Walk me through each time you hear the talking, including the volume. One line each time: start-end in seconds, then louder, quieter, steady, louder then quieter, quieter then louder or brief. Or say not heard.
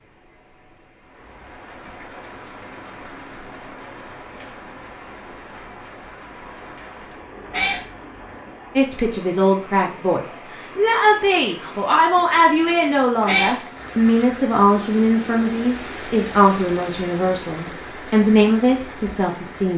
8.8-19.7 steady.